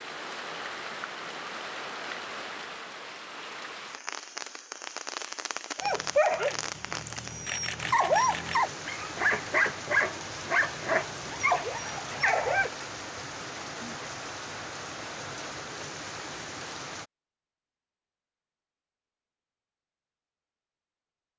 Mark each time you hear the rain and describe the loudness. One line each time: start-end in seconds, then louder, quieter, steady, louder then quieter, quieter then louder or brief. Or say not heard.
0.0-17.1 steady.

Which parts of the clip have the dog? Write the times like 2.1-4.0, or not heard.
5.8-12.7.